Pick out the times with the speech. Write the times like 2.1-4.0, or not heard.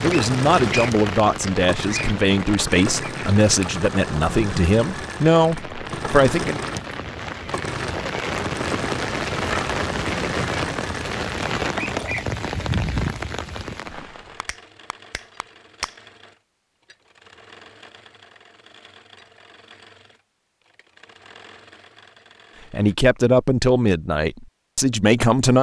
0.0-6.6, 22.7-25.5.